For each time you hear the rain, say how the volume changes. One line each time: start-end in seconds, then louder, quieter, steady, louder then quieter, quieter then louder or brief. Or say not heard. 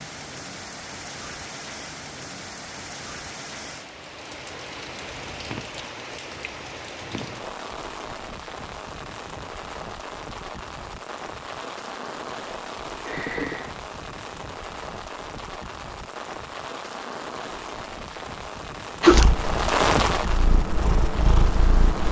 0.0-22.0 louder.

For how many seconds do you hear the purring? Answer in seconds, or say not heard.
3 s.